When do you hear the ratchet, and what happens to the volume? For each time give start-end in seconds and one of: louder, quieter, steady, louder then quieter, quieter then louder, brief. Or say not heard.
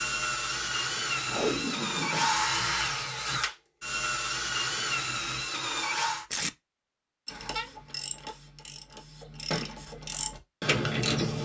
7.2-11.4 quieter then louder.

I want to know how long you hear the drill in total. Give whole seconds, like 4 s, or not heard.
6 s.